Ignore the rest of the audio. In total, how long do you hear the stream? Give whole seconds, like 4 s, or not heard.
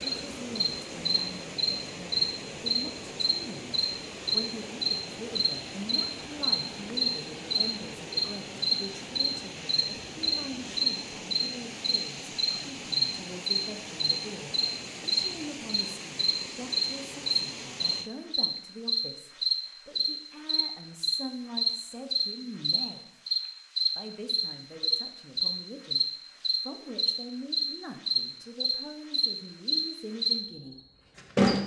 18 s.